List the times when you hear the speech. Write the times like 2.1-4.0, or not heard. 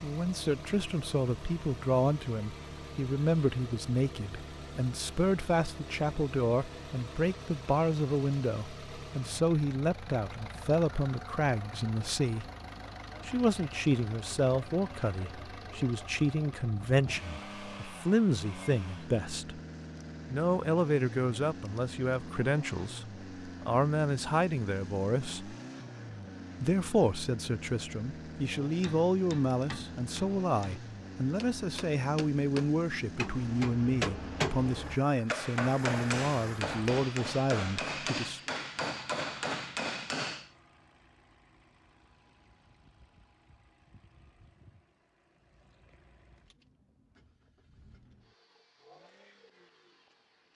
0.0-12.4, 13.2-19.6, 20.3-25.6, 26.6-38.4.